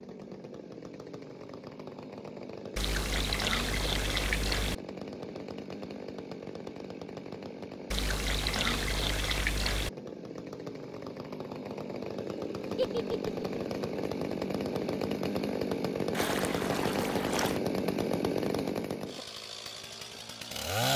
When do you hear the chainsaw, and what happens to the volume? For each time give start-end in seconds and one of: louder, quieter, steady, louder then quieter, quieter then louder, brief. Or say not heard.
0.0-20.9 louder.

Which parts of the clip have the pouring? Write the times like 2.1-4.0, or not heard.
2.8-4.8, 7.9-9.9, 16.1-17.6.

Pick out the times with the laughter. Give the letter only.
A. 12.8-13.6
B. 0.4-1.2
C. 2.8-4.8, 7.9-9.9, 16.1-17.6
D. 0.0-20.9
A.